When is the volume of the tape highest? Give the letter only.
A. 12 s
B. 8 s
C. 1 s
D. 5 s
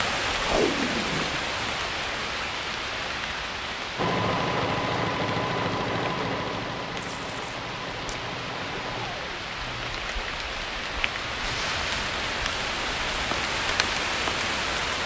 C.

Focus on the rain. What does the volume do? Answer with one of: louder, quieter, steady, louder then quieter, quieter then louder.
quieter then louder.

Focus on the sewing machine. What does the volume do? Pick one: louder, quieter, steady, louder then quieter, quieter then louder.
quieter.